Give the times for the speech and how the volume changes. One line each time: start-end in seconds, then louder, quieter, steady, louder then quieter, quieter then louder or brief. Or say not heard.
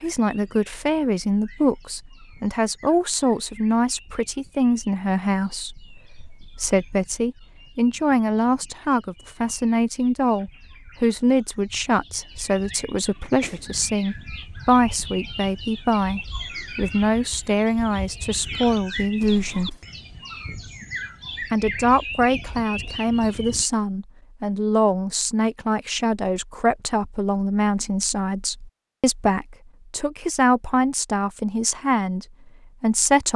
0.0-19.8 steady
21.5-33.3 steady.